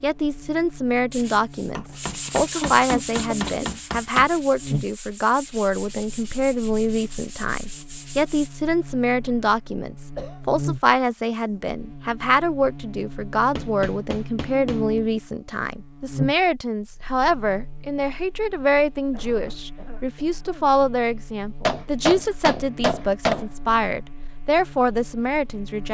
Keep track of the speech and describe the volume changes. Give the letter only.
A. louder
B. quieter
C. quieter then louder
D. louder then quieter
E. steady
E.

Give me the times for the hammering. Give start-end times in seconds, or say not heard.
1.8-4.3, 13.6-14.8, 21.6-23.4.